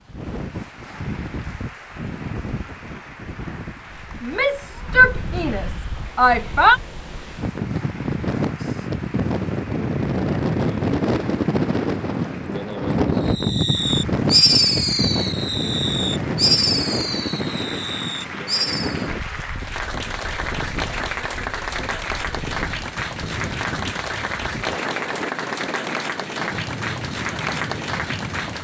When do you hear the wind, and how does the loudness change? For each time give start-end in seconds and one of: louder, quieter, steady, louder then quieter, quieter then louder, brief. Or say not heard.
0.0-28.5 louder then quieter.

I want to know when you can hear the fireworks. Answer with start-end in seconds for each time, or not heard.
13.3-19.1.